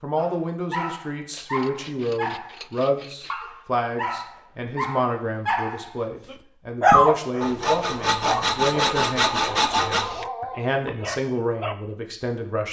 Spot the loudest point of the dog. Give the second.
7 s.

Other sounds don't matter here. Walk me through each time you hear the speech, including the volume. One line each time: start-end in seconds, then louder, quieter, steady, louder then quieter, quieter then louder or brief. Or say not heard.
0.0-12.6 steady.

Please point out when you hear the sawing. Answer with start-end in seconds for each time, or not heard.
1.3-3.5, 7.4-10.2.